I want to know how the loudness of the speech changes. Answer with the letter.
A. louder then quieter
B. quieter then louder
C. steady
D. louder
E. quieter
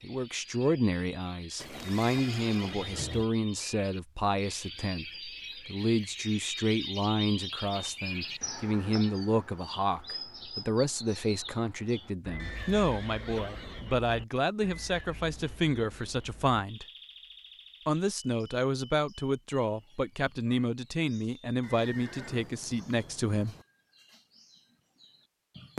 C.